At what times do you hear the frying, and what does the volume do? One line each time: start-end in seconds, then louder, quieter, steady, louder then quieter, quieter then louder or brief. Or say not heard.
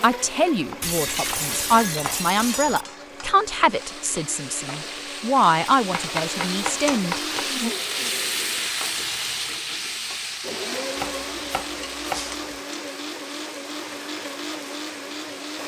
2.5-15.6 louder then quieter.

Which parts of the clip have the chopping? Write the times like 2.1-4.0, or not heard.
0.7-3.0, 5.9-7.3, 10.9-12.4.